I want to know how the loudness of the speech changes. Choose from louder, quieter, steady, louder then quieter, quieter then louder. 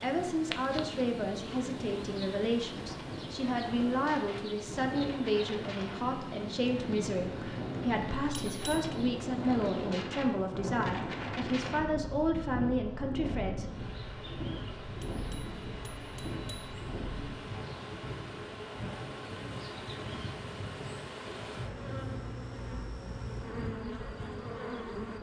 steady.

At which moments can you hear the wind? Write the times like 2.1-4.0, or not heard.
0.0-25.1.